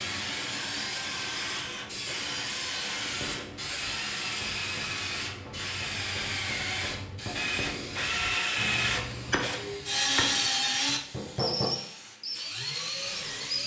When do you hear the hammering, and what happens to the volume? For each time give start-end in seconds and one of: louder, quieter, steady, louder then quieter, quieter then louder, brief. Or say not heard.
2.9-11.8 louder.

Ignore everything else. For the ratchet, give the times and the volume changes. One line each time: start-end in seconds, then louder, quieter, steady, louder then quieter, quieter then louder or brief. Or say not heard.
not heard.